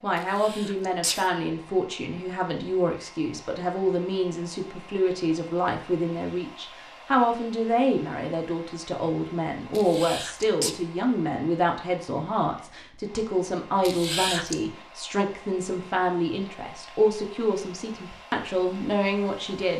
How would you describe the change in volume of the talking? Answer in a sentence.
The volume of the talking stays about the same.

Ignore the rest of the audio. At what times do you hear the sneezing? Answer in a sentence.
The sneezing can be heard from 0.1 to 1.3 s, from 9.8 to 10.8 s and from 13.8 to 14.6 s.